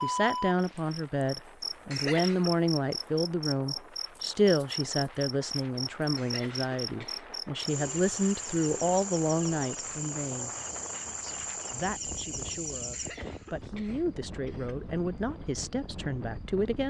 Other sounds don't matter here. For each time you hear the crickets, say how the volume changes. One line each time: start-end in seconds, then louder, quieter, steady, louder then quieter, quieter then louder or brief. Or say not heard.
0.0-16.6 quieter.